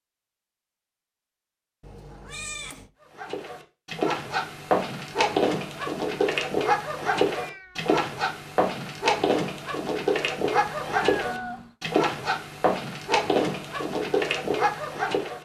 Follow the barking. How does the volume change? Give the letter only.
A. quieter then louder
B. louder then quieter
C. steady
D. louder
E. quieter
C.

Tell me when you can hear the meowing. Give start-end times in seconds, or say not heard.
1.8-2.9, 7.3-8.0, 10.7-11.8.